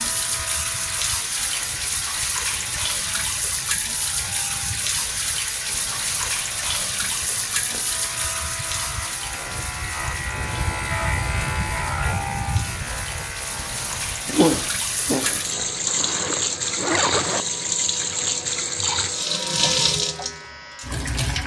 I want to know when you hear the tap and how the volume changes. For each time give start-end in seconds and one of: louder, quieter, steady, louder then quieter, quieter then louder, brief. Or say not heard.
0.0-21.4 quieter then louder.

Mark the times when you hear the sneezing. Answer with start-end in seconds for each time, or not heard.
14.2-15.4.